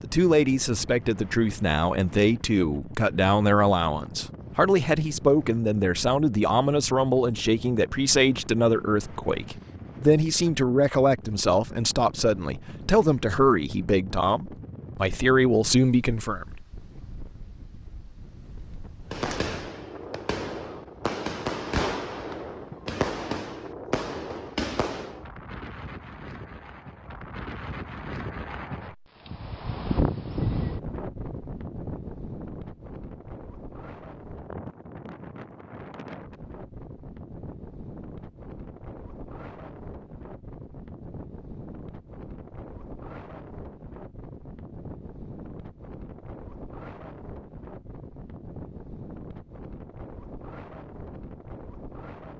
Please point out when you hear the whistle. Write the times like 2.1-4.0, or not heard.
not heard.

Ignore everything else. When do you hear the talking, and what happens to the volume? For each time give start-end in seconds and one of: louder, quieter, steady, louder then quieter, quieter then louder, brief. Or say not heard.
0.0-16.4 steady.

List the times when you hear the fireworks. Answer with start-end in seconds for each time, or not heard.
19.1-25.2.